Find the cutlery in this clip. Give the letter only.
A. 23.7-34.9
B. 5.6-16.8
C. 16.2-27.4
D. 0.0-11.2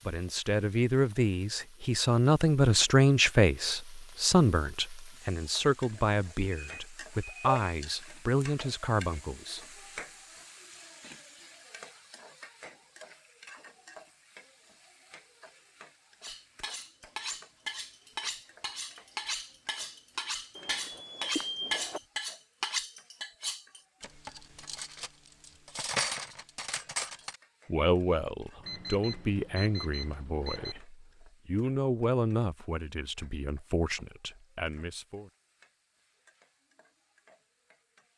C.